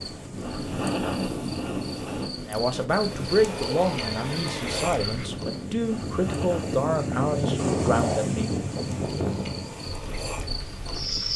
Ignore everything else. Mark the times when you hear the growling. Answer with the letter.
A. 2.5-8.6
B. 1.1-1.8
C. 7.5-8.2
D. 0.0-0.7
C.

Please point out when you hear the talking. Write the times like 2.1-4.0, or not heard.
2.5-8.6.